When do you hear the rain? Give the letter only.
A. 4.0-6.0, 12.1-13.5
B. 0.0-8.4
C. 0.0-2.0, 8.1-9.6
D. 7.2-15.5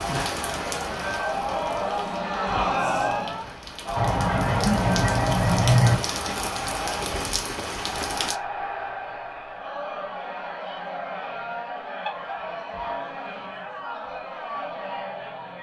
B.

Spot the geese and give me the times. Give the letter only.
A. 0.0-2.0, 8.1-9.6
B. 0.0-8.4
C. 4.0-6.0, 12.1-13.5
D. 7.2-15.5
C.